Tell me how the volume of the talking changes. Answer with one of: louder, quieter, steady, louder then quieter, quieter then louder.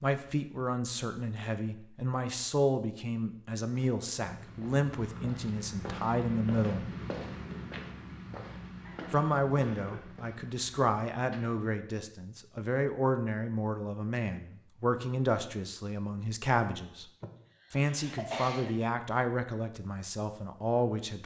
steady.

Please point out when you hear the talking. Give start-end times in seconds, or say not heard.
0.0-6.8, 9.1-17.1, 17.7-21.2.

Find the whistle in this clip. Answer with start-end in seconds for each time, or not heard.
not heard.